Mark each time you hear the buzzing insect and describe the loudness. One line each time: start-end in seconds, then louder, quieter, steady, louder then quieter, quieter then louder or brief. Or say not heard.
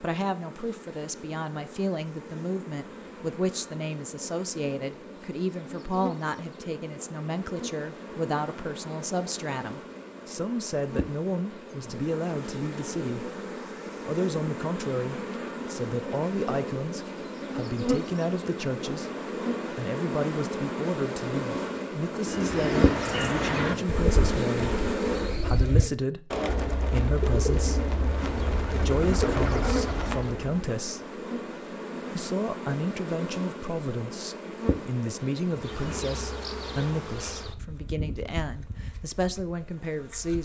0.0-25.4 louder
28.1-40.4 quieter.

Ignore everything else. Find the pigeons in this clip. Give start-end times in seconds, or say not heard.
22.2-30.6.